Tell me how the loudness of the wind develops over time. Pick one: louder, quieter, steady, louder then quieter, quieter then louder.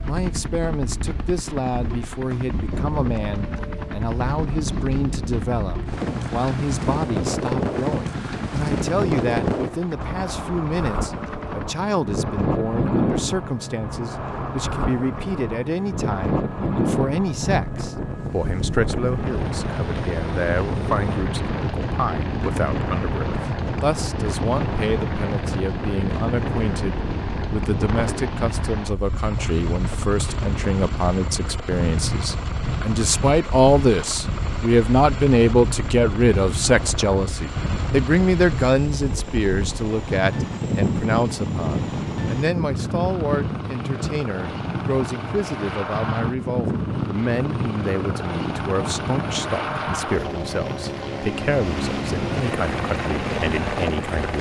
steady.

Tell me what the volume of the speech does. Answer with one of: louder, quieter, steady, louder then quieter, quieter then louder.
louder then quieter.